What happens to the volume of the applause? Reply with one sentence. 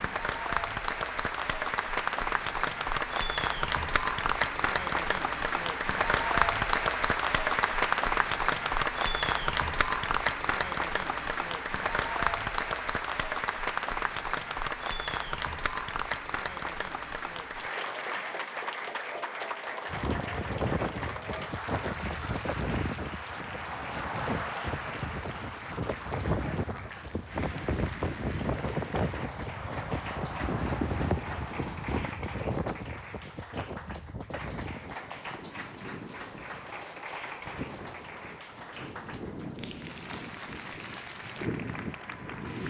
The loudness of the applause goes down.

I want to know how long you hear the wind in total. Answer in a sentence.
You can hear the wind for 23 seconds altogether.